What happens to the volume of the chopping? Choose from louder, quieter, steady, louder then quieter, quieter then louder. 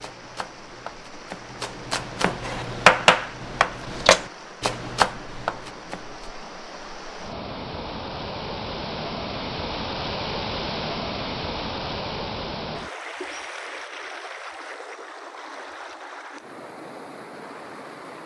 louder then quieter.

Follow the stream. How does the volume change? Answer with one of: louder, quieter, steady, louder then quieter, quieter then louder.
louder then quieter.